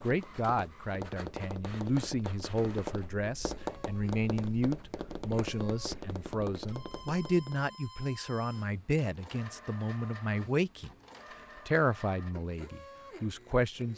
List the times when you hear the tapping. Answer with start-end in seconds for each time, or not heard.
0.0-7.8.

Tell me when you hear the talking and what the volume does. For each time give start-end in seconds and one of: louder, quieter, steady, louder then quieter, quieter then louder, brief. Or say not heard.
0.0-10.9 steady
11.7-13.9 brief.